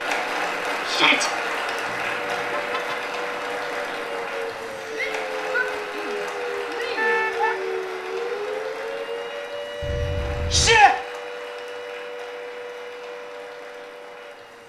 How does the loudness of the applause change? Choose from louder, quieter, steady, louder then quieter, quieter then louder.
quieter.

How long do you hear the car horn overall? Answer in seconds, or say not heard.
3 s.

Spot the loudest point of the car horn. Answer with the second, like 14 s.
7 s.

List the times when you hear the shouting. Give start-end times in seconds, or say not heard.
0.8-1.3, 4.9-7.5, 10.5-10.9.